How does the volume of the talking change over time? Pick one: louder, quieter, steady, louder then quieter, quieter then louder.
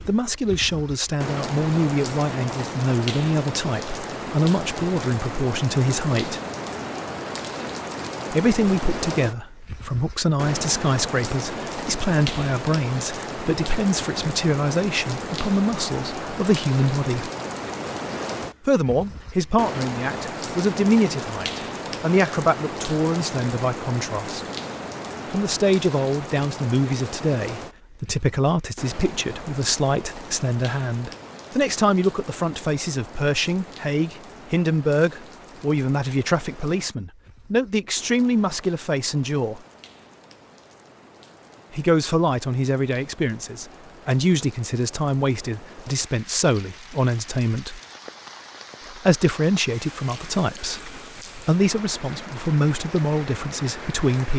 steady.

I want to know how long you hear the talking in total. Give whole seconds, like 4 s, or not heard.
47 s.